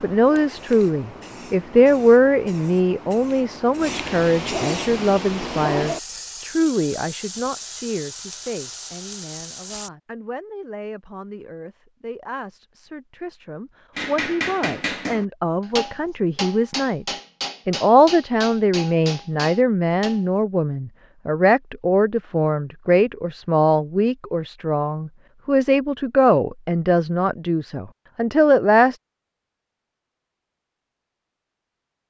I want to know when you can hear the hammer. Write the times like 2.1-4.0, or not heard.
13.9-20.2.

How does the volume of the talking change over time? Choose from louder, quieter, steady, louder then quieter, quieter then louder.
quieter then louder.